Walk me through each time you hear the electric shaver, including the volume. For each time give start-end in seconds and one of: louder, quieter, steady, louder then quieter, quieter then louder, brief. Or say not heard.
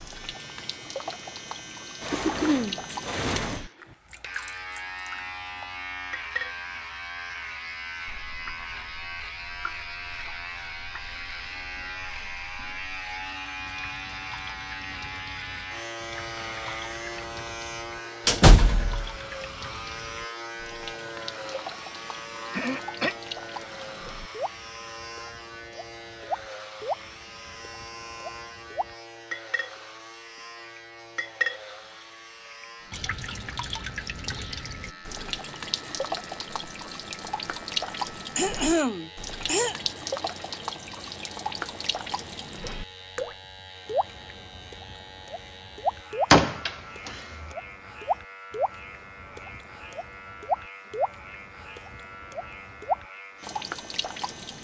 0.0-54.5 quieter.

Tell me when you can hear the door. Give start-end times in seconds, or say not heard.
2.0-3.6, 18.2-19.1, 46.3-47.1.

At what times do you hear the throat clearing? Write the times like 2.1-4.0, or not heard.
2.1-2.8, 22.5-23.1, 38.4-39.8.